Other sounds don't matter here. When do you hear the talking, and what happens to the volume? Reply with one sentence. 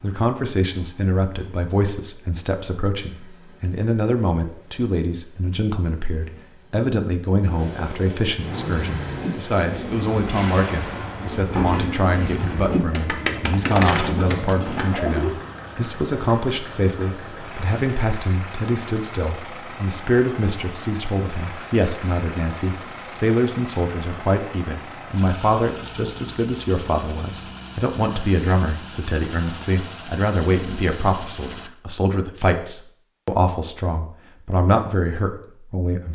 You can hear the talking from 0.0 to 36.1 s, at a steady volume.